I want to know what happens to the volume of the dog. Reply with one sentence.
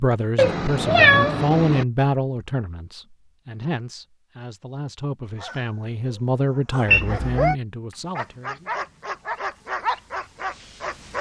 The volume of the dog goes up.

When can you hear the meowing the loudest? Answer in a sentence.
The loudest moment of the meowing is at 1 second.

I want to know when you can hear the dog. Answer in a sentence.
You can hear the dog from 5.2 to 11.1 s.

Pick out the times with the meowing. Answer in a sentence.
The meowing can be heard from 0.3 to 1.9 s and from 6.8 to 7.5 s.